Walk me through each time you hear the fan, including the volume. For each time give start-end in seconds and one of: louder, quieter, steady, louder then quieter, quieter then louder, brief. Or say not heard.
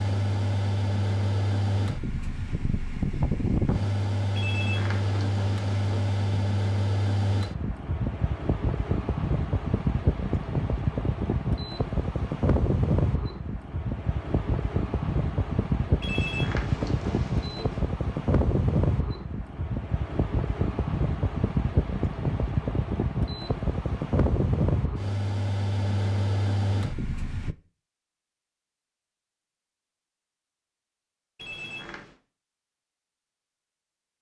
0.0-27.6 steady.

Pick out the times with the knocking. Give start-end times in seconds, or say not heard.
not heard.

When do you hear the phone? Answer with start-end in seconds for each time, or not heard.
4.3-6.3, 16.0-17.9, 31.4-32.1.